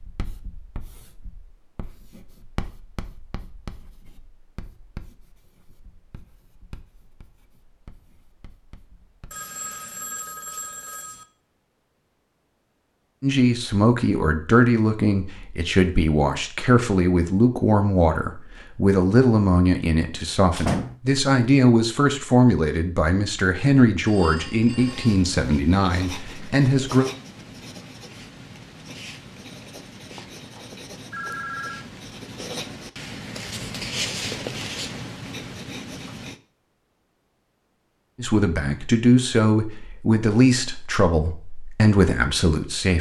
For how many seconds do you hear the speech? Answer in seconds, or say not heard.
19 s.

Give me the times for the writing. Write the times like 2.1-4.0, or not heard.
0.0-9.4, 24.8-36.4.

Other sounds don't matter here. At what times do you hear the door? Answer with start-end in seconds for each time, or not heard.
20.1-20.9.